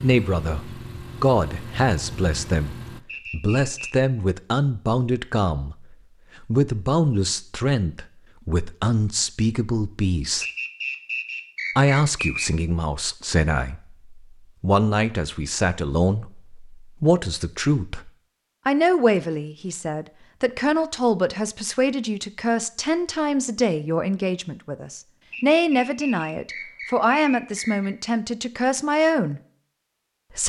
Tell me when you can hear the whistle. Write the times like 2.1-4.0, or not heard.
3.0-4.0, 10.4-12.4, 25.3-27.9.